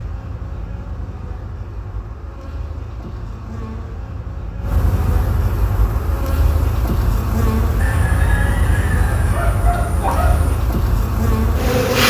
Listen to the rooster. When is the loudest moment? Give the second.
10 s.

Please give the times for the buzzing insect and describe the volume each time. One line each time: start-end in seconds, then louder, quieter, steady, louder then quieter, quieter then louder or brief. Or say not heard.
0.0-12.0 louder.